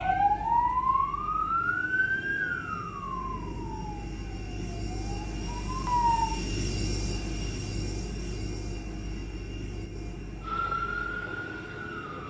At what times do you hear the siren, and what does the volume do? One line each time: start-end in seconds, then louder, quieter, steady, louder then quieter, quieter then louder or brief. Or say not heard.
0.0-6.3 quieter then louder
10.4-12.2 brief.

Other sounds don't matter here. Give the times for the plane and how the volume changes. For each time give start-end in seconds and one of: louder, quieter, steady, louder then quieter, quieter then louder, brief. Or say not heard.
0.0-12.2 louder then quieter.